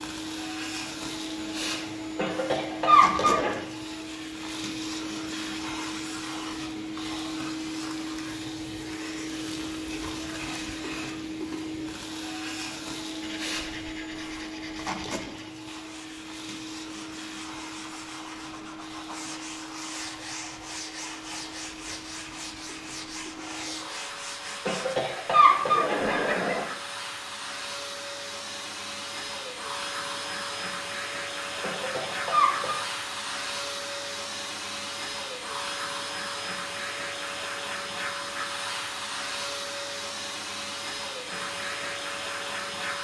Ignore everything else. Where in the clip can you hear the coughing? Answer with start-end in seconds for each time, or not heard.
2.1-3.6, 24.6-26.6, 31.6-32.8.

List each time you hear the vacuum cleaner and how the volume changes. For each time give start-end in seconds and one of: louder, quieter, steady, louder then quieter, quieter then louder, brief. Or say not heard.
0.0-42.9 quieter then louder.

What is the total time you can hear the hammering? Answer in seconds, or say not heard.
not heard.